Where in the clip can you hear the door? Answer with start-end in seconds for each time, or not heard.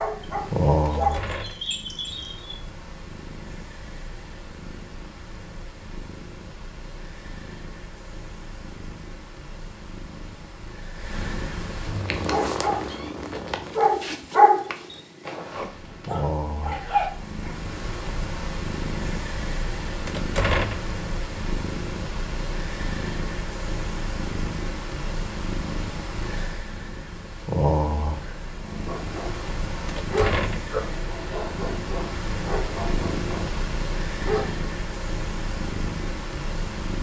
0.8-1.7, 20.1-20.9, 29.9-30.8.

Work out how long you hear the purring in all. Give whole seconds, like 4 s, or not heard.
37 s.